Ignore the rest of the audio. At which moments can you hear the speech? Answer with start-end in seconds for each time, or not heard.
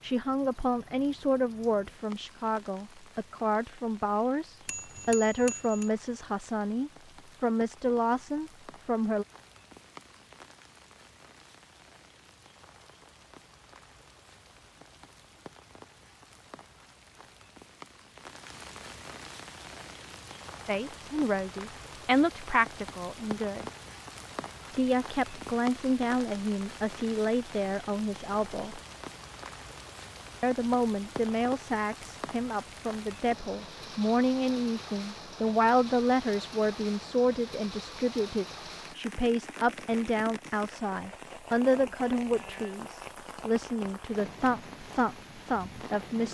0.0-9.2, 20.6-23.7, 24.7-28.8, 30.4-46.2.